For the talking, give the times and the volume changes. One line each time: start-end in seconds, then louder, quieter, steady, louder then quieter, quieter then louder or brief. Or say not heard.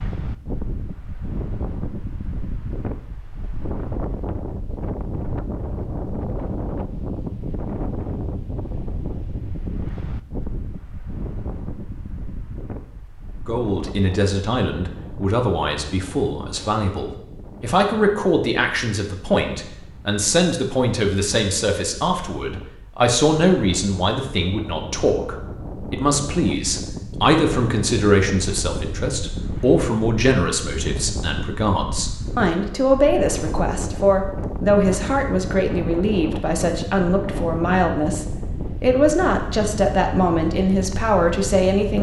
13.4-41.9 steady.